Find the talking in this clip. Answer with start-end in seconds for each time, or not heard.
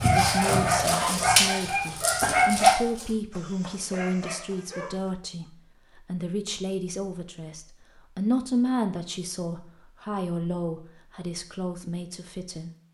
0.0-12.7.